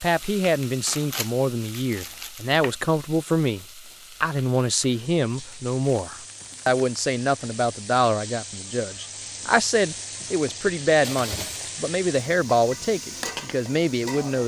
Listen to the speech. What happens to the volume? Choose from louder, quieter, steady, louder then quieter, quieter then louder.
steady.